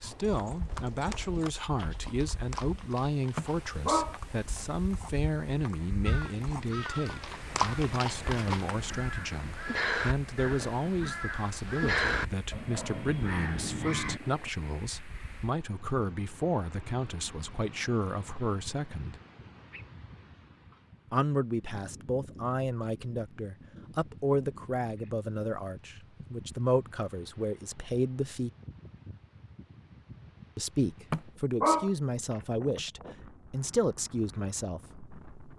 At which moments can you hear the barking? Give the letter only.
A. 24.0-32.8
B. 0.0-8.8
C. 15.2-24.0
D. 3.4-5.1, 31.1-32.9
D.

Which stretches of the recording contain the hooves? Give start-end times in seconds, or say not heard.
0.0-8.8.